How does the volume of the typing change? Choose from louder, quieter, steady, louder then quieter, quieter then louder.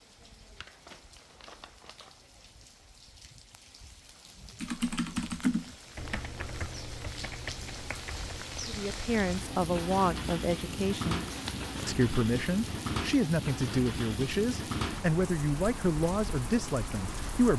quieter.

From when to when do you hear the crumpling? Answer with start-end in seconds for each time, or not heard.
0.6-2.2, 11.3-11.8.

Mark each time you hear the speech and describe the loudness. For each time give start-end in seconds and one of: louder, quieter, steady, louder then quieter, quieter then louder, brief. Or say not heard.
8.7-11.2 brief
11.8-17.5 steady.